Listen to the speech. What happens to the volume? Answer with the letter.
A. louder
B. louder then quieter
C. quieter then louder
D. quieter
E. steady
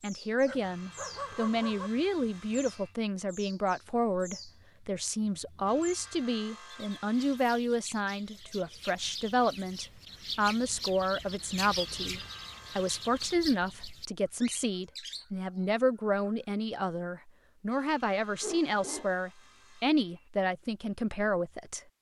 E.